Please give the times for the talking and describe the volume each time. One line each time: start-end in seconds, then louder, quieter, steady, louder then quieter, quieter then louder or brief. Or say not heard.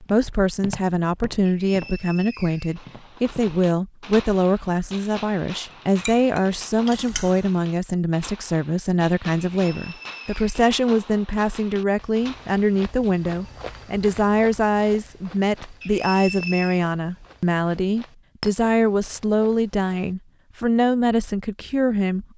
0.0-22.3 steady.